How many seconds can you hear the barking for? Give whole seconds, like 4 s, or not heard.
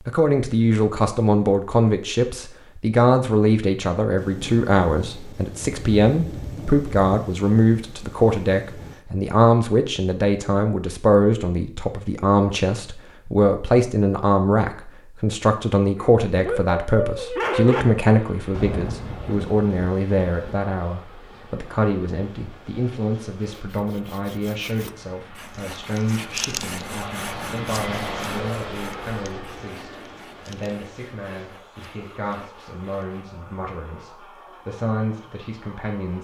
2 s.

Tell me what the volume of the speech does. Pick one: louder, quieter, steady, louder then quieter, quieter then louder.
quieter.